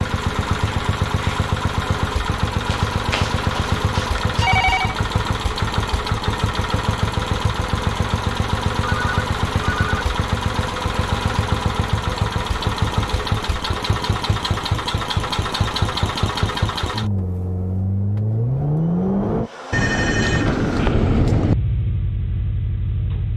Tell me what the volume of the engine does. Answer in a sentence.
The volume of the engine stays about the same.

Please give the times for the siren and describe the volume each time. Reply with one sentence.
You can't hear the siren here.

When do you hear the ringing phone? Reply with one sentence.
The ringing phone can be heard from 2.7 to 5.0 s, from 8.8 to 9.9 s and from 19.7 to 21.6 s.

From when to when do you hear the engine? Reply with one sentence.
The engine can be heard from 0.0 to 23.3 s.